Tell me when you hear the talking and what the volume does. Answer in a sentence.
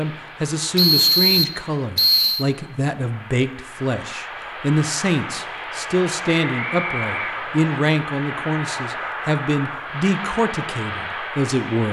You can hear the talking from 0.0 to 11.8 s, at a steady volume.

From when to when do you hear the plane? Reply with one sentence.
You can hear the plane from 0.0 to 11.8 s.